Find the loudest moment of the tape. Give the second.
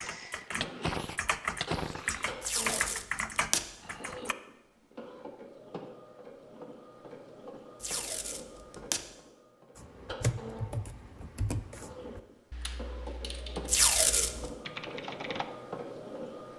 14 s.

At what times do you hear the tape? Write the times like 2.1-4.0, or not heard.
2.4-3.6, 7.8-9.0, 13.7-14.5.